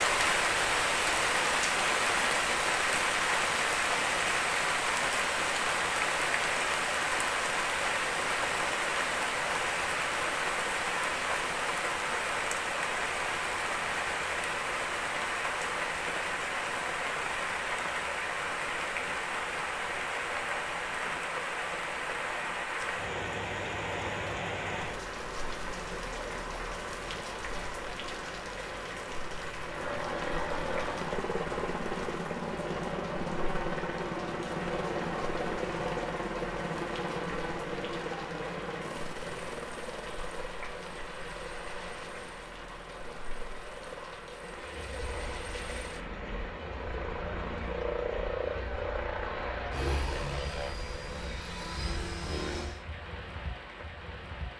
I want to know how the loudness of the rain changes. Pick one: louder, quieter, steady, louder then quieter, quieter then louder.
quieter.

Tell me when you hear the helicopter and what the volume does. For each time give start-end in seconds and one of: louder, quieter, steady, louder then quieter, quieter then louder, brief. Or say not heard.
29.6-52.9 quieter then louder.